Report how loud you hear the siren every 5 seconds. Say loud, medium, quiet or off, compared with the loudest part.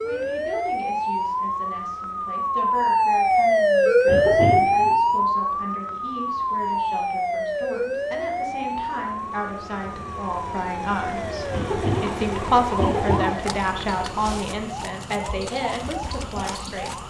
loud, medium, quiet, quiet.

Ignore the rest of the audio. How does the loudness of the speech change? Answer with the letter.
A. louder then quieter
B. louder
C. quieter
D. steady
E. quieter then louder
B.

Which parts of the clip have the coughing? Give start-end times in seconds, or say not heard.
4.0-5.0, 11.5-13.3.